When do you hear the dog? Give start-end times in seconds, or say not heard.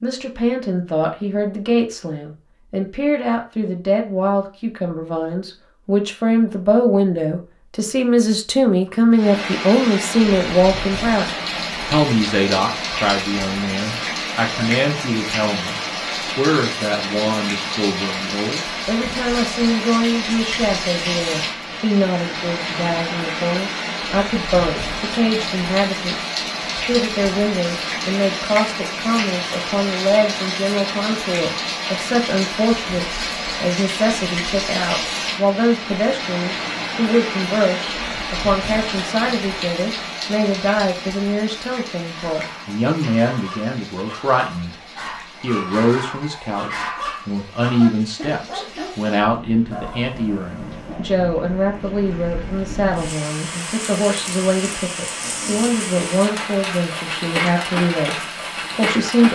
42.0-51.0.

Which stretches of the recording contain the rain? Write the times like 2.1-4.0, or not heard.
9.1-59.2.